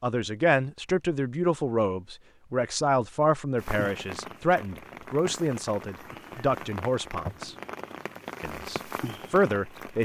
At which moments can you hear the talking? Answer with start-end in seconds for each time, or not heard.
0.0-7.5, 8.4-9.9.